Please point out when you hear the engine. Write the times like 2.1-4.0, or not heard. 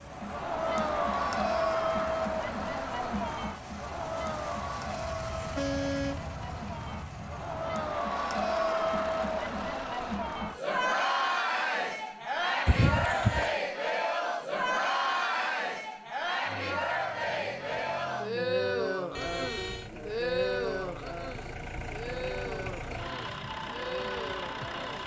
0.0-10.2, 16.4-25.0.